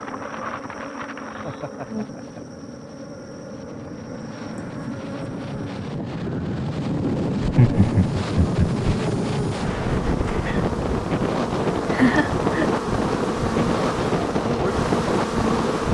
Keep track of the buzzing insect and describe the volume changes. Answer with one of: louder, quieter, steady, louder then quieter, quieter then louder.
louder.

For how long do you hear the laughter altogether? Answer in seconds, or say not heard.
3 s.